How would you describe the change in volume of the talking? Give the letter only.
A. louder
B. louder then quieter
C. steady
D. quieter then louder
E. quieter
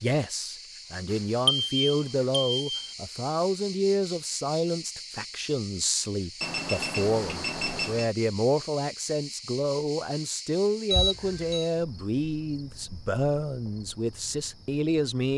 C.